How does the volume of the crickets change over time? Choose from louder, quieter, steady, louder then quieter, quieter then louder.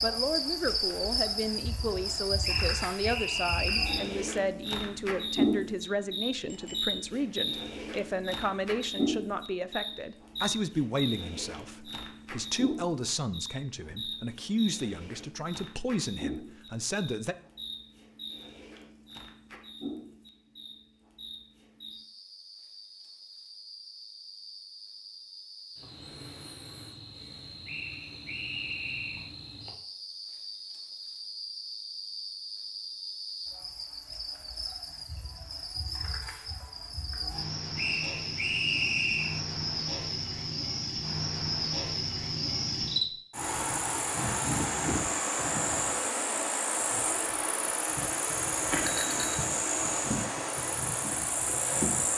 quieter then louder.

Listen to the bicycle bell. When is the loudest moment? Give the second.
49 s.